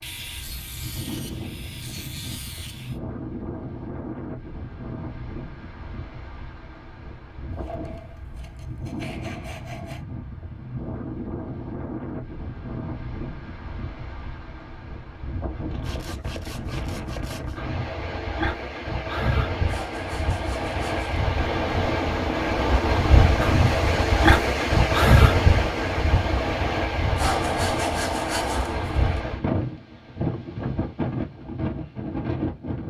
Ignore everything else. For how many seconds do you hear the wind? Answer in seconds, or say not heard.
33 s.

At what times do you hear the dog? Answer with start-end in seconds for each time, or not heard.
not heard.